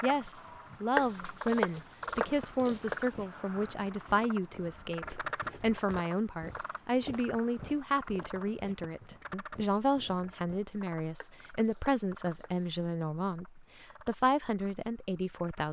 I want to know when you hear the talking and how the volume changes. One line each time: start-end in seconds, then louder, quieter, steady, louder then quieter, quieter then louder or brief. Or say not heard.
0.0-15.6 steady.